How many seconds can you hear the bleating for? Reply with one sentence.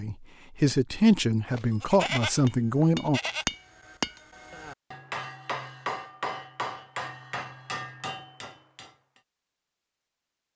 The bleating can be heard for 2 seconds in total.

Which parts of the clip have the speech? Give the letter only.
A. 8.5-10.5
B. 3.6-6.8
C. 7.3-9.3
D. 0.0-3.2
D.